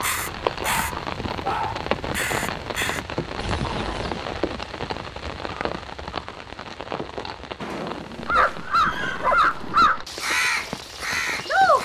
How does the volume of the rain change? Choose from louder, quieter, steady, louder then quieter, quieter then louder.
quieter.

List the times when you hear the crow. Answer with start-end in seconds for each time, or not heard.
0.0-3.0, 8.2-11.8.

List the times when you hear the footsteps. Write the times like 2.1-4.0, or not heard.
not heard.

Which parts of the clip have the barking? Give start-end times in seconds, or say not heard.
0.6-1.9, 8.2-9.9.